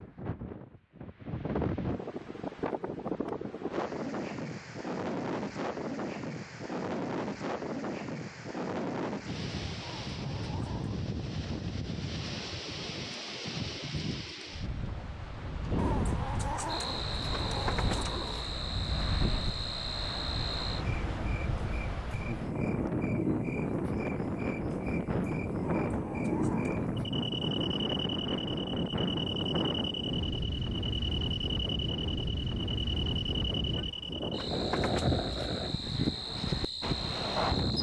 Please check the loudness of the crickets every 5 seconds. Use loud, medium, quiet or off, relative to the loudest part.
off, off, off, loud, loud, loud, loud, loud.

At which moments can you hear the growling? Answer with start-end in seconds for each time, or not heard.
9.8-11.1, 15.8-18.5, 25.6-26.9.